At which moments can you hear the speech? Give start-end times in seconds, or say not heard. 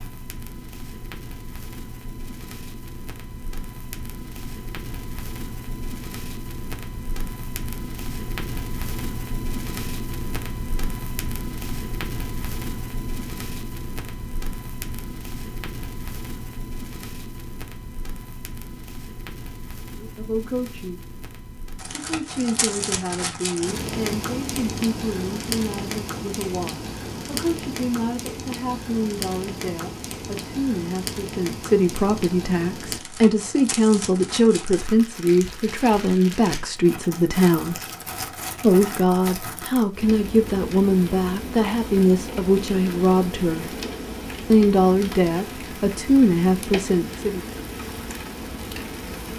19.9-21.0, 21.9-37.8, 38.6-43.7, 44.5-47.4.